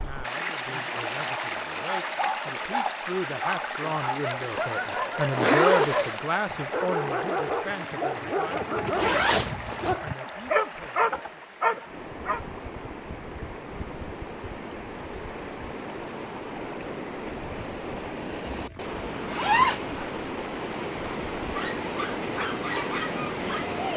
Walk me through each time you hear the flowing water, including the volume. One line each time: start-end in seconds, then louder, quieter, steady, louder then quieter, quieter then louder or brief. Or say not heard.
0.0-23.9 quieter then louder.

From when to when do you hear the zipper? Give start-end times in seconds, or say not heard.
4.4-6.2, 8.9-9.9, 18.5-20.1.